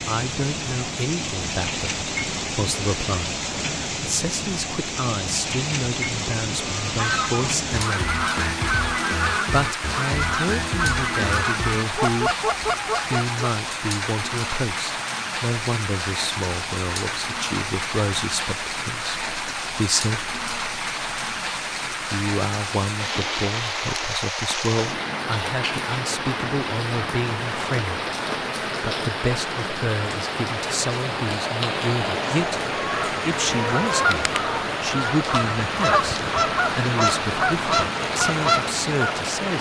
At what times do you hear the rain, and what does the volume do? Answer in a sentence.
You can hear the rain from 0.0 to 39.5 s, at a steady volume.